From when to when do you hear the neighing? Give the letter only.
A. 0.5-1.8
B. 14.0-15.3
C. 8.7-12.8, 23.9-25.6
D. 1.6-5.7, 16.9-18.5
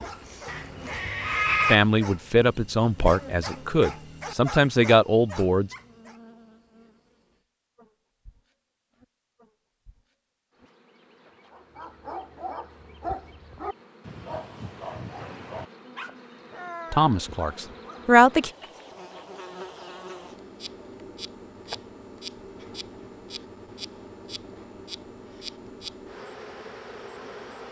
A.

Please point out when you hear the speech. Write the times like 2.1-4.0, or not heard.
1.6-5.7, 16.9-18.5.